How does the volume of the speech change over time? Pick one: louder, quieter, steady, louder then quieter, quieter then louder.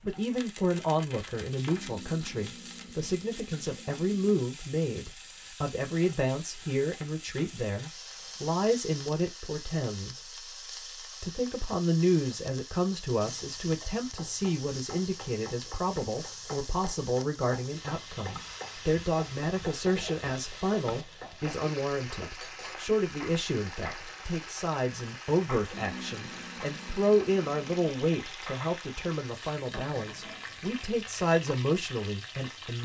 steady.